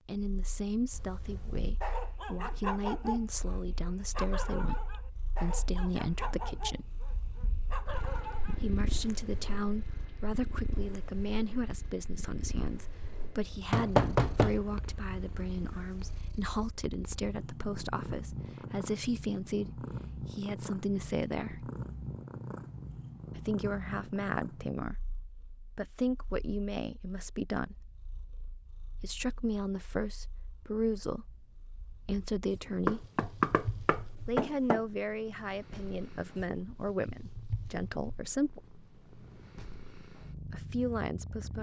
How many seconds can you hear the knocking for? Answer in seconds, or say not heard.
4 s.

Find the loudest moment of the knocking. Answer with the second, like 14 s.
14 s.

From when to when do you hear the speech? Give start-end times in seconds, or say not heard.
0.1-6.9, 8.5-21.7, 23.4-27.9, 29.0-33.0, 34.2-38.6, 40.5-41.5.